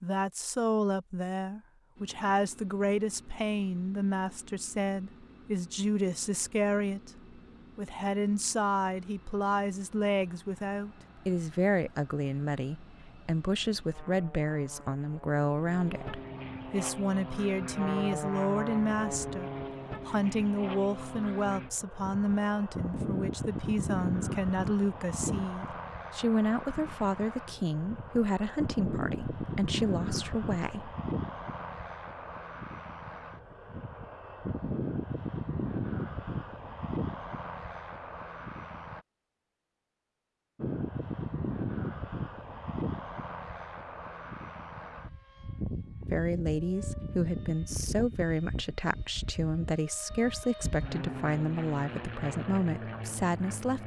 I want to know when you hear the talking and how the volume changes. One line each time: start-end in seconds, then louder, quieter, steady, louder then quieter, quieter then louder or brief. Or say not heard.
0.0-30.9 steady
46.1-53.8 steady.